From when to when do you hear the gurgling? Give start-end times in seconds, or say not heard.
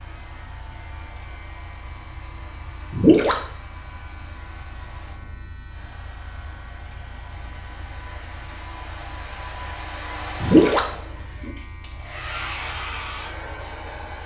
2.9-3.5, 10.4-11.0.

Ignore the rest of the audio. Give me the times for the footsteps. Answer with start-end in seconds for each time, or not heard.
not heard.